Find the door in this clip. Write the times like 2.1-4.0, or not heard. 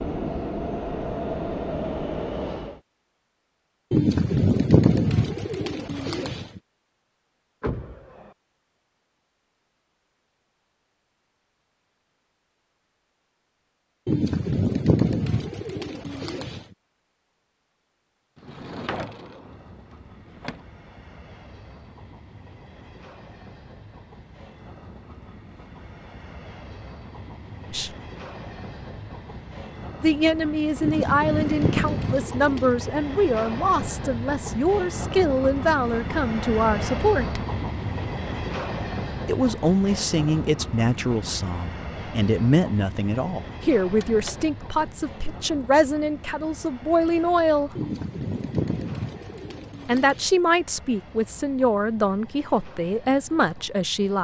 7.6-8.3, 18.4-20.6, 43.9-44.5.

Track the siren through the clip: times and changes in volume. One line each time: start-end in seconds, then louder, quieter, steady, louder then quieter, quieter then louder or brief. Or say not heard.
not heard.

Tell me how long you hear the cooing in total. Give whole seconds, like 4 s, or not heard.
10 s.